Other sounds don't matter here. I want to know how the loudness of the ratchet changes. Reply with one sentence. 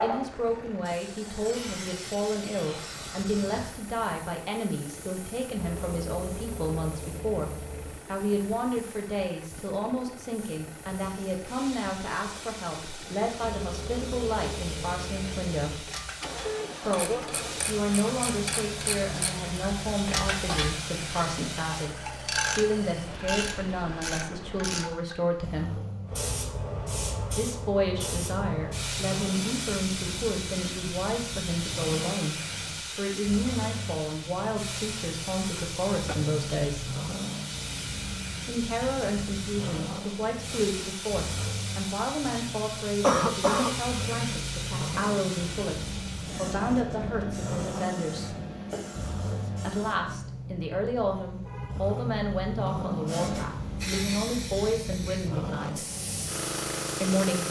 The volume of the ratchet goes up.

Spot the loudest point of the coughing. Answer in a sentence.
The loudest moment of the coughing is at 43 seconds.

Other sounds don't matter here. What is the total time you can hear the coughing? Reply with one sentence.
You can hear the coughing for 2 seconds altogether.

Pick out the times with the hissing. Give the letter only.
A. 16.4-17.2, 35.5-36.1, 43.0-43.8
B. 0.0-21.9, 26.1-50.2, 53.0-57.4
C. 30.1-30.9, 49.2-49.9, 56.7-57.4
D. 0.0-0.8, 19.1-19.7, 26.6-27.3
B.